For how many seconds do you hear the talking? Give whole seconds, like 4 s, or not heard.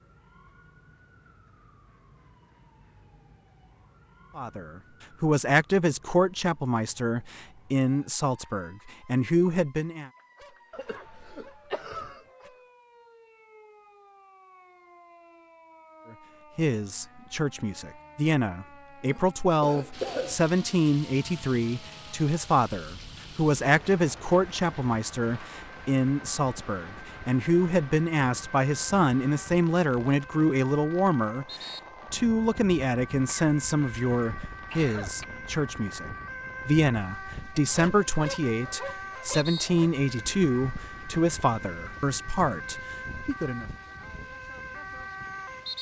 33 s.